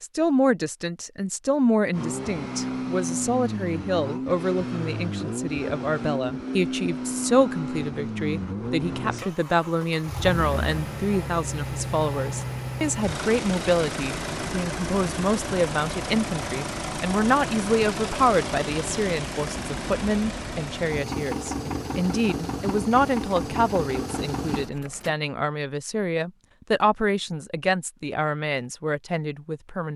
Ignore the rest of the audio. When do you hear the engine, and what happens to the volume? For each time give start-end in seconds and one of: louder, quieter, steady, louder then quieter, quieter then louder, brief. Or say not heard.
1.9-25.1 steady.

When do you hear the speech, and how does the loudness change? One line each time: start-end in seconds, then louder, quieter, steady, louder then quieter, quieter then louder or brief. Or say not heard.
0.0-29.9 steady.